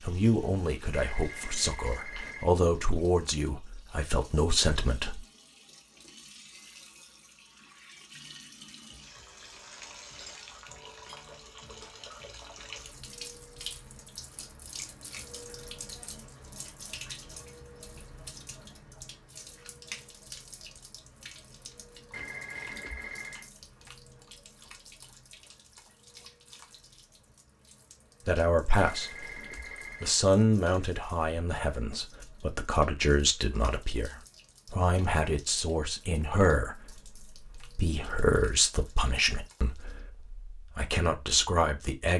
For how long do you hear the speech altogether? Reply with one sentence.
You can hear the speech for 18 seconds altogether.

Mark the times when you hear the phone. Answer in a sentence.
You can hear the phone from 0.9 to 2.5 s, from 22.1 to 23.5 s and from 28.8 to 30.2 s.